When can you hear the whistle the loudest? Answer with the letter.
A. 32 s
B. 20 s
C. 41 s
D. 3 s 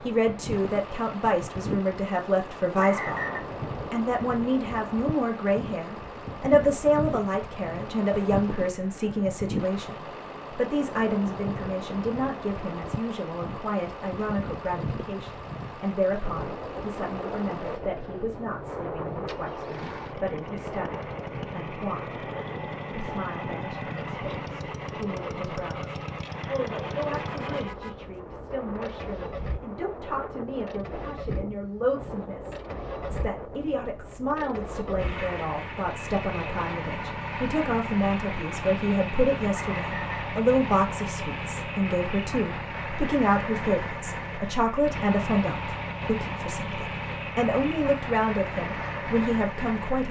D.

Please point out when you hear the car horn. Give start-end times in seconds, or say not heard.
27.1-28.1.